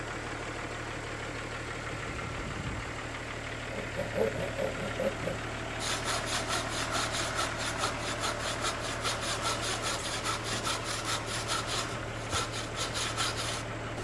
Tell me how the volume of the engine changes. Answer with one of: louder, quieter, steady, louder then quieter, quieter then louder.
steady.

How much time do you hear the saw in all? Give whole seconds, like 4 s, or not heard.
10 s.